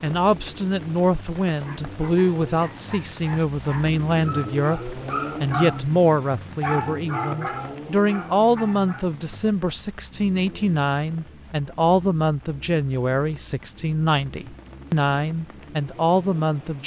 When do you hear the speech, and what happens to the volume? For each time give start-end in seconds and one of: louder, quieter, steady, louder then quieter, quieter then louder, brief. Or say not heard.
0.0-16.8 steady.